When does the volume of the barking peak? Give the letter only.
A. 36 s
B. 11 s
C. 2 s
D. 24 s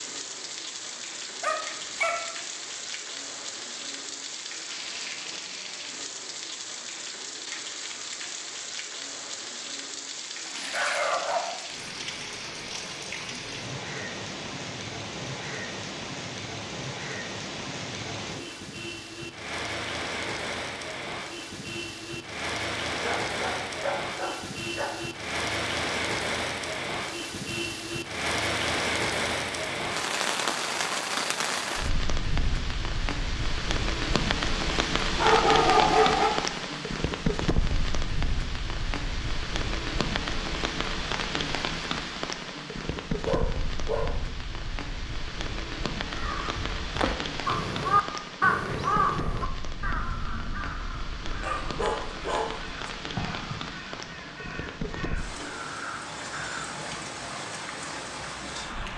A.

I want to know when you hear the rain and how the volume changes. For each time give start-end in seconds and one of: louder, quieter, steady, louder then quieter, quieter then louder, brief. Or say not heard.
0.0-58.9 louder then quieter.